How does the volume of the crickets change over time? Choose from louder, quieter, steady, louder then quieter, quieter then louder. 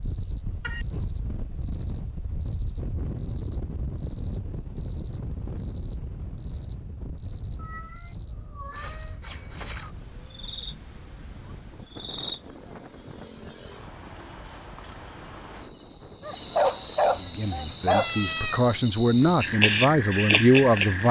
louder.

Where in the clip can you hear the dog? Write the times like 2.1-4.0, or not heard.
16.2-18.1.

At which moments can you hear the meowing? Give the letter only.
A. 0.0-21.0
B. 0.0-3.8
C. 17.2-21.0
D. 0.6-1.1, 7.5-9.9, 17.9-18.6
D.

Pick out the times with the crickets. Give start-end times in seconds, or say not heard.
0.0-21.0.